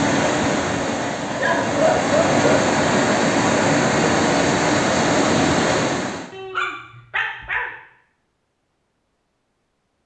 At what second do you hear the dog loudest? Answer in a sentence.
The volume of the dog peaks at 2 seconds.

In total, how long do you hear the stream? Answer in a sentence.
The stream can be heard for 6 seconds in total.